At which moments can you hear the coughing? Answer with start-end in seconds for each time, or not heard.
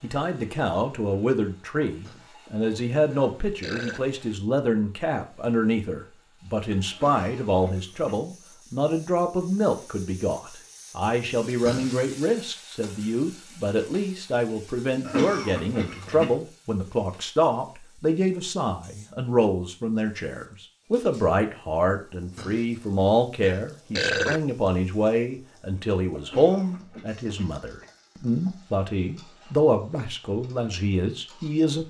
6.9-8.2, 15.1-16.4, 26.2-27.5.